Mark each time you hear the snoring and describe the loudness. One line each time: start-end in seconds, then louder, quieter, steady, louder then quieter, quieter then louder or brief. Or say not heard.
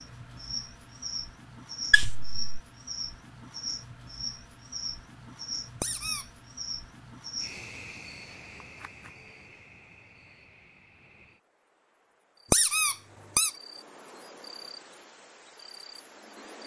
not heard.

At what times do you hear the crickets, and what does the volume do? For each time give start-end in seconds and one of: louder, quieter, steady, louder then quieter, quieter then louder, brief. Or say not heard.
0.0-16.6 quieter then louder.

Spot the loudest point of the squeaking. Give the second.
13 s.